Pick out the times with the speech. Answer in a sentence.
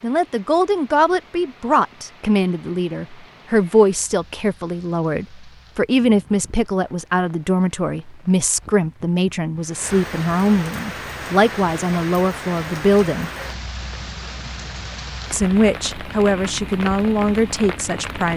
The speech can be heard from 0.0 to 13.3 s and from 15.3 to 18.3 s.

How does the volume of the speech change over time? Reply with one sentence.
The loudness of the speech stays about the same.